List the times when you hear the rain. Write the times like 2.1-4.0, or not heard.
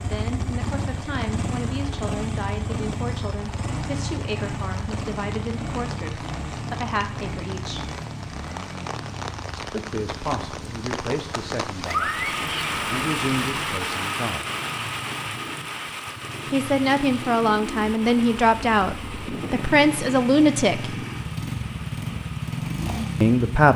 0.1-23.7.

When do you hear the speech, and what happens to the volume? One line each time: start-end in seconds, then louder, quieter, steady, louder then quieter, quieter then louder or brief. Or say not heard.
0.0-7.9 steady
9.6-14.4 quieter then louder
16.5-20.9 steady
23.2-23.7 brief.